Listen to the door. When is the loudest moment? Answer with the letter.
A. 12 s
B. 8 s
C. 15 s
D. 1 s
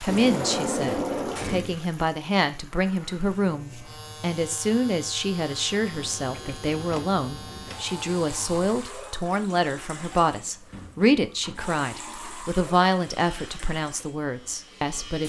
D.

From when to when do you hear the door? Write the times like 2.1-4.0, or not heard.
0.1-1.8, 6.8-7.8, 10.7-11.8.